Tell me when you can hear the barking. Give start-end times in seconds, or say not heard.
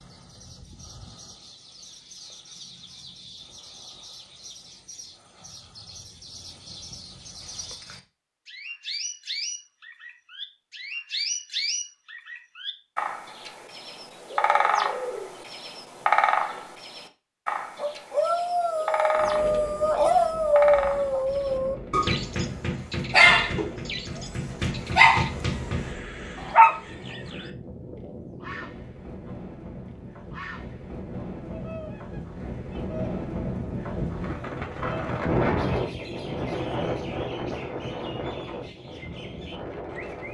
17.8-26.8.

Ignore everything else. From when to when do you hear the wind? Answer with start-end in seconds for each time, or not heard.
19.1-40.2.